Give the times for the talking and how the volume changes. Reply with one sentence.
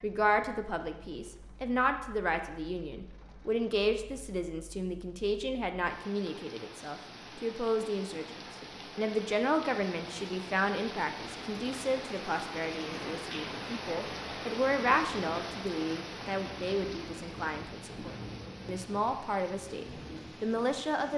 You can hear the talking from 0.0 to 21.1 s, at a steady volume.